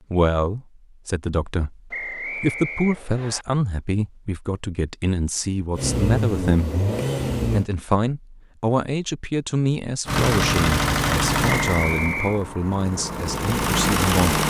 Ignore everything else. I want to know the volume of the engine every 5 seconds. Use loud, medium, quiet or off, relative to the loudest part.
off, loud, loud.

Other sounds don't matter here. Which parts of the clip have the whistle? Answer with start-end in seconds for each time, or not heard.
1.9-3.5, 11.4-12.4.